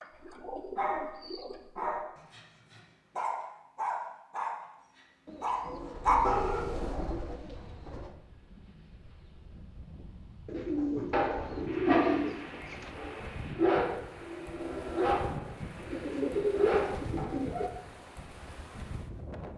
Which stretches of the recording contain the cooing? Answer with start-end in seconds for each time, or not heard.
0.0-1.6, 5.2-8.2, 10.4-12.9, 15.9-17.7.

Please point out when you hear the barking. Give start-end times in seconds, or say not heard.
0.1-6.9, 10.8-17.6.